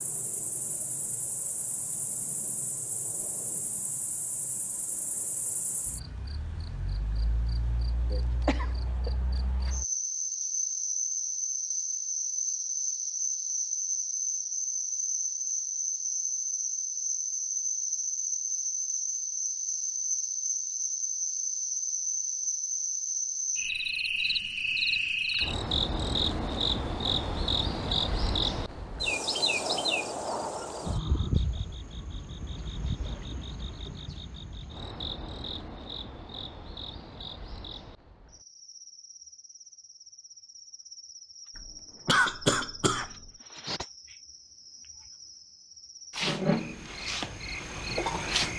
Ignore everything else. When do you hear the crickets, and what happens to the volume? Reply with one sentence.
The crickets can be heard from 0.0 to 48.5 s, getting louder then quieter.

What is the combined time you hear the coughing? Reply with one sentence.
The coughing can be heard for 3 seconds in total.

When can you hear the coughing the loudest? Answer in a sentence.
The volume of the coughing peaks at 42 seconds.